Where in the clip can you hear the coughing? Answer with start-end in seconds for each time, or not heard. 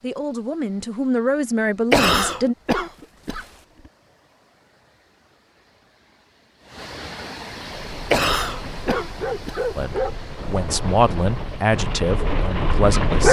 1.9-3.5, 8.1-9.7.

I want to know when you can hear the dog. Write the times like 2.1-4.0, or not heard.
7.8-13.2.